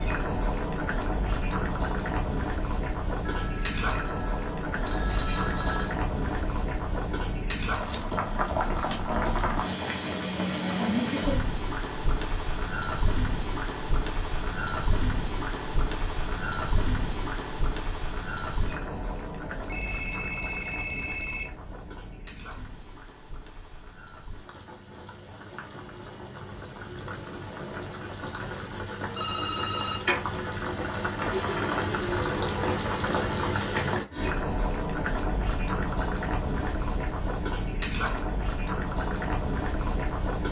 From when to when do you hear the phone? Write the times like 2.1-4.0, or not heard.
3.2-6.0, 19.5-21.4, 29.1-30.0.